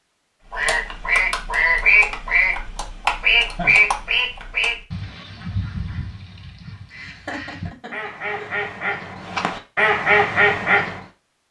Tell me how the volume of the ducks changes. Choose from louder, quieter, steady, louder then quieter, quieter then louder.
quieter then louder.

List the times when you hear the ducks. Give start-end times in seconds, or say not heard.
0.5-11.0.